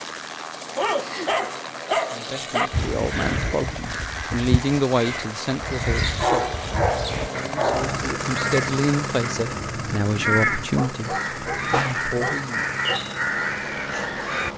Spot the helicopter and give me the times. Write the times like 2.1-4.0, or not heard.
0.0-14.5.